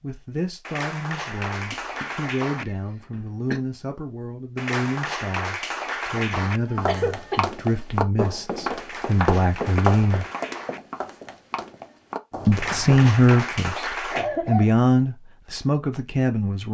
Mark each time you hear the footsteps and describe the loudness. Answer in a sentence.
You can hear the footsteps from 6.8 to 13.1 s, getting quieter.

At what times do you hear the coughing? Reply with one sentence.
The coughing can be heard from 1.6 to 3.6 s, from 6.5 to 7.5 s and from 14.1 to 14.8 s.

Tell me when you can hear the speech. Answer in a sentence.
You can hear the speech from 0.0 to 10.2 s and from 12.4 to 16.6 s.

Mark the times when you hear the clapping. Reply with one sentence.
The clapping can be heard from 0.6 to 2.6 s, from 4.5 to 6.6 s, from 8.8 to 10.8 s and from 12.5 to 14.3 s.